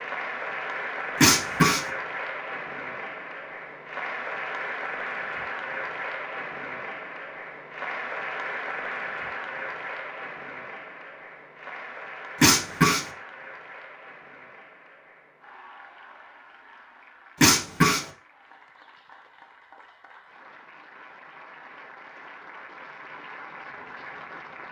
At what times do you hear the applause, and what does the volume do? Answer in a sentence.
You can hear the applause from 0.0 to 24.6 s, getting quieter then louder.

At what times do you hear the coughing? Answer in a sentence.
The coughing can be heard from 1.2 to 1.9 s, from 12.4 to 13.1 s and from 17.4 to 18.1 s.